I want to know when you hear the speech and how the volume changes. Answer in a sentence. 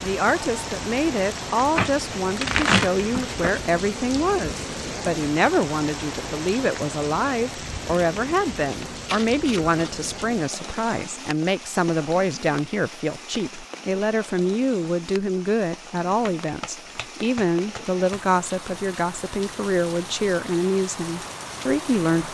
The speech can be heard from 0.0 to 22.2 s, at a steady volume.